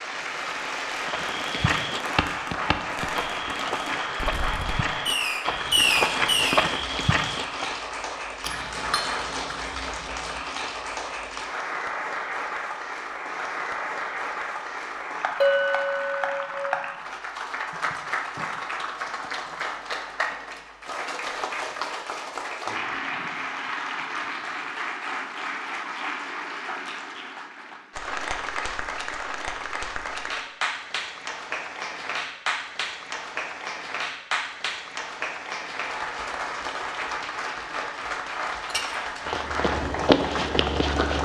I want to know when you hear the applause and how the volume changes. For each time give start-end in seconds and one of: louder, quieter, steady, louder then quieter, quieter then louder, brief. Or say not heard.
0.0-41.2 steady.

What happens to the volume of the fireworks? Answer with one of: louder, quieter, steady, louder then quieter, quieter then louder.
louder.